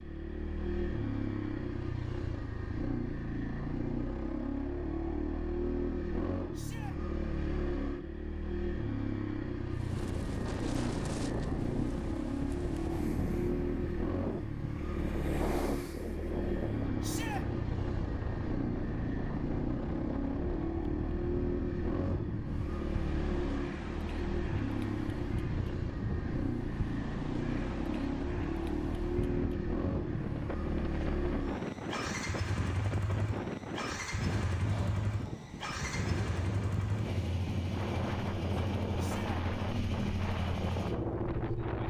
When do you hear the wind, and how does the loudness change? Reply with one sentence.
You can hear the wind from 9.7 to 41.8 s, at a steady volume.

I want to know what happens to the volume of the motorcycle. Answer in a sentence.
The loudness of the motorcycle stays about the same.